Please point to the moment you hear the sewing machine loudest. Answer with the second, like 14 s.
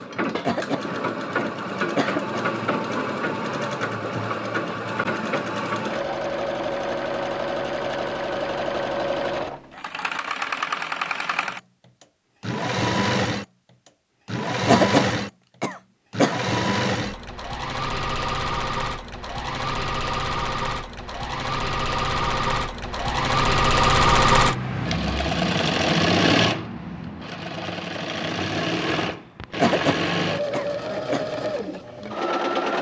24 s.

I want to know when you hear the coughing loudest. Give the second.
15 s.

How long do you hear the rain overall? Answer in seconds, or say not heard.
not heard.